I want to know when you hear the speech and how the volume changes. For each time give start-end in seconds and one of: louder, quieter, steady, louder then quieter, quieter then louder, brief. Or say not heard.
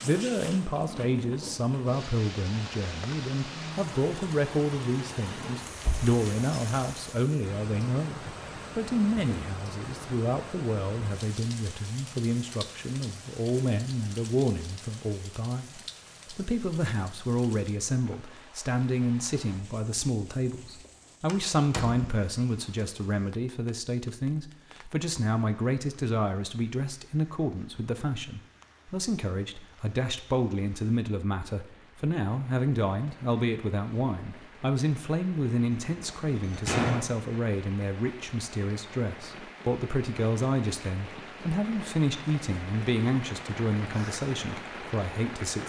0.0-45.6 steady.